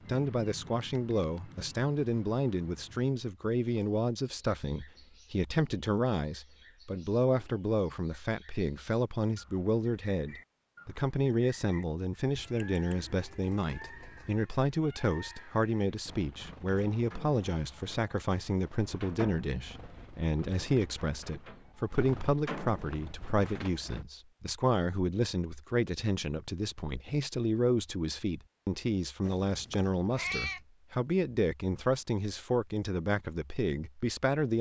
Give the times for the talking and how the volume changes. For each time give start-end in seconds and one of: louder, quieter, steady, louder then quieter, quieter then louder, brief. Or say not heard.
0.1-34.5 steady.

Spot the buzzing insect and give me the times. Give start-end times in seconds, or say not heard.
not heard.